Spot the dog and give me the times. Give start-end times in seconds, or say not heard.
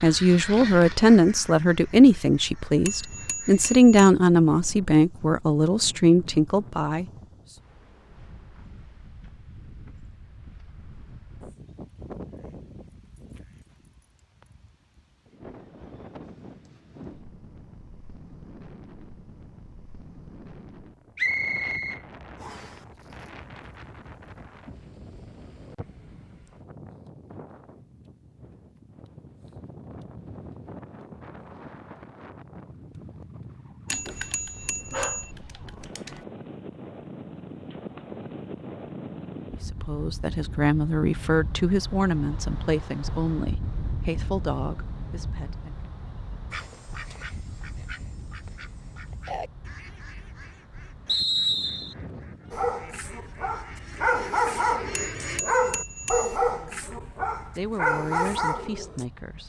33.9-36.2, 52.5-59.0.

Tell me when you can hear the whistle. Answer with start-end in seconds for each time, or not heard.
21.1-22.8, 51.0-52.0.